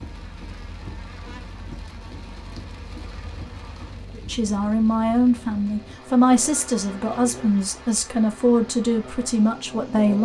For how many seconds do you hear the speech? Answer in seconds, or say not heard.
6 s.